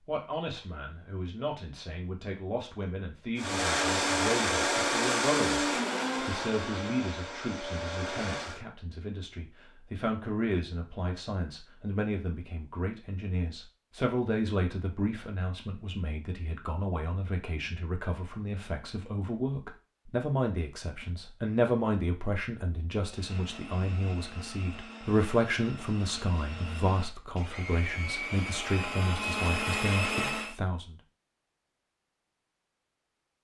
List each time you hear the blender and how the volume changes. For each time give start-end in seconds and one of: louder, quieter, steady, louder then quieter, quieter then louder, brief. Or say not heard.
3.4-8.7 quieter
23.0-30.6 louder.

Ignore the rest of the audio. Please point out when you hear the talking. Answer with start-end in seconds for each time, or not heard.
0.1-30.9.